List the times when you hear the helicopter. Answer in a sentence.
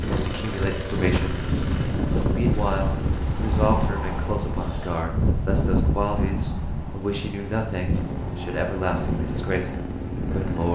You can hear the helicopter from 0.0 to 3.9 s and from 7.9 to 10.7 s.